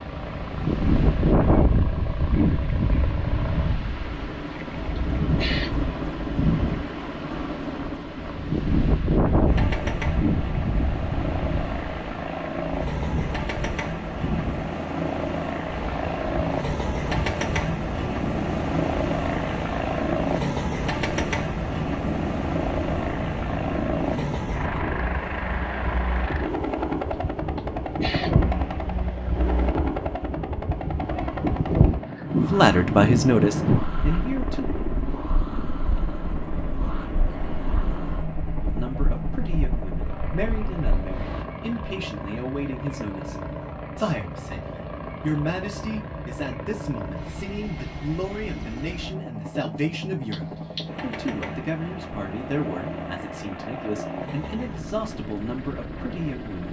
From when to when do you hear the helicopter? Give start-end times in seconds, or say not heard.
0.0-56.6.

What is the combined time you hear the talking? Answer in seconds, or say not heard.
20 s.